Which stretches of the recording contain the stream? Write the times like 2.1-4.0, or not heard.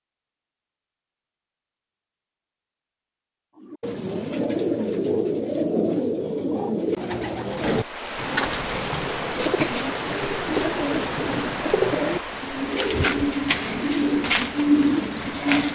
7.6-15.7.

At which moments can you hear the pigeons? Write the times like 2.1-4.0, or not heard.
3.6-15.7.